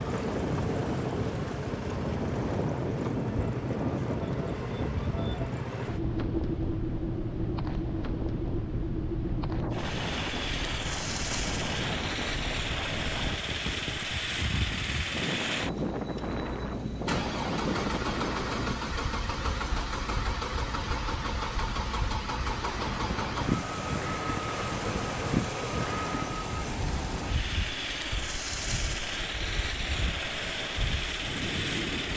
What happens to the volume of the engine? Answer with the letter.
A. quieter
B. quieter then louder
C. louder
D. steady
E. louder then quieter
D.